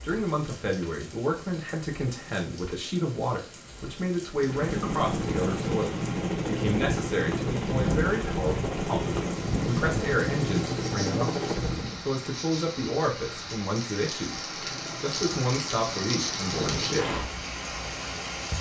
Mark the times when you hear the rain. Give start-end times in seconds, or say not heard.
0.0-18.5.